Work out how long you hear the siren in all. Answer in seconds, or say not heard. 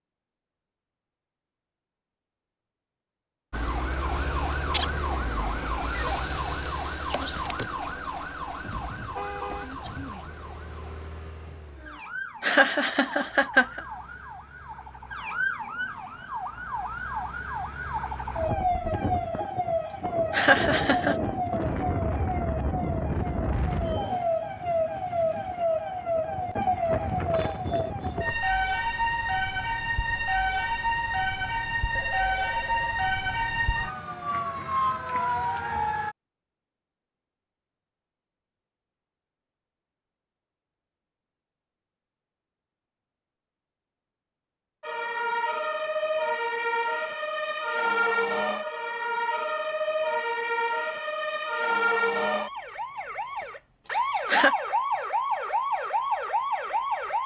45 s.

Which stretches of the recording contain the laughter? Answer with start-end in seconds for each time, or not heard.
12.4-13.8, 20.3-21.1, 53.9-54.5.